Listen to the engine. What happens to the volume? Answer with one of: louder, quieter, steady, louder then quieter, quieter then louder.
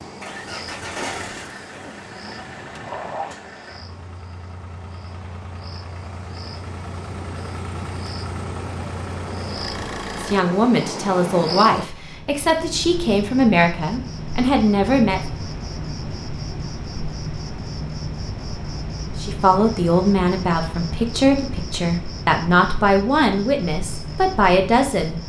quieter then louder.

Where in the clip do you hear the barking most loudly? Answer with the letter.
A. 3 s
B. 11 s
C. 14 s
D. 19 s
A.